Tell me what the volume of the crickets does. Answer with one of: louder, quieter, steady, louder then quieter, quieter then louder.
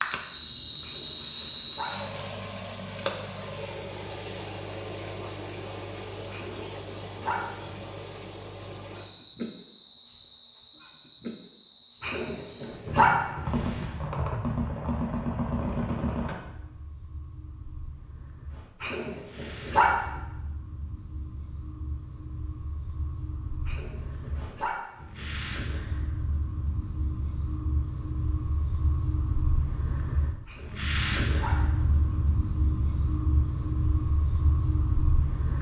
quieter then louder.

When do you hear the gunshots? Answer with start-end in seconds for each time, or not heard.
12.8-16.4.